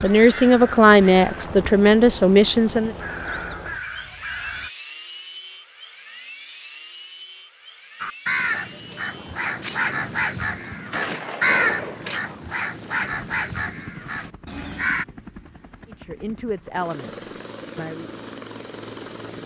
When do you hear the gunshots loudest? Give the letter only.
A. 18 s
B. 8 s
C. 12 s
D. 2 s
C.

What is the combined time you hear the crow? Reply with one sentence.
The crow can be heard for 12 seconds in total.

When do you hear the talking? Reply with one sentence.
The talking can be heard from 0.0 to 3.0 s and from 15.8 to 18.1 s.